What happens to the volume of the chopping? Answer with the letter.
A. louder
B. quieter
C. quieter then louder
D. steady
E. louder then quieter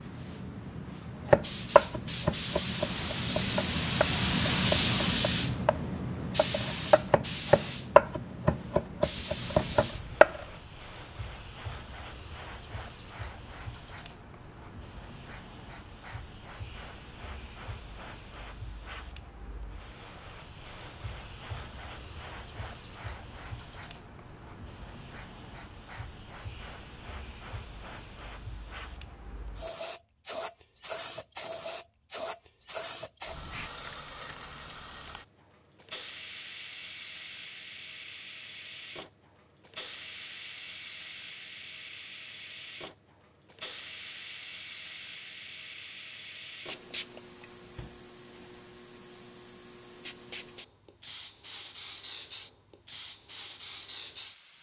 C.